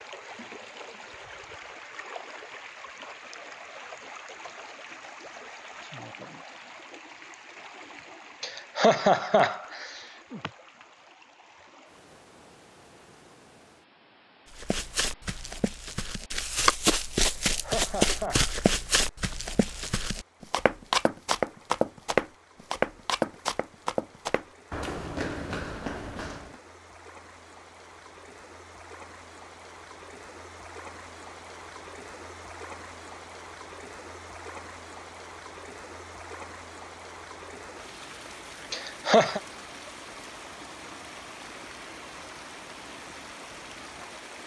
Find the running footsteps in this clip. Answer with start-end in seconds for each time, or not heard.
14.5-26.6.